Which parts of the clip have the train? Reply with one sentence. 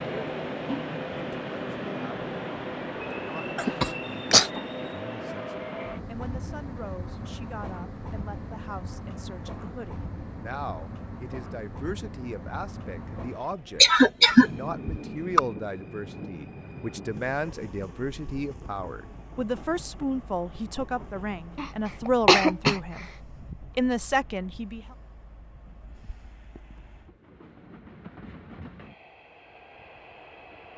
The train can be heard from 0.0 to 30.7 s.